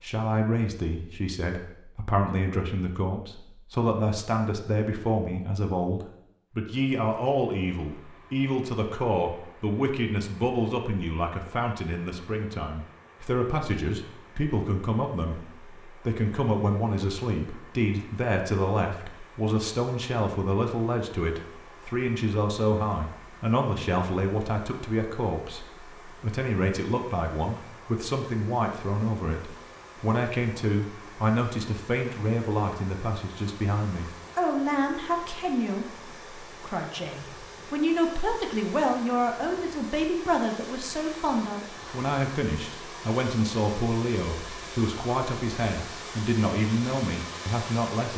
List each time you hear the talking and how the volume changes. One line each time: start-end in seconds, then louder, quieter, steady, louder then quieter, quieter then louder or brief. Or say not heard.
0.0-48.1 steady.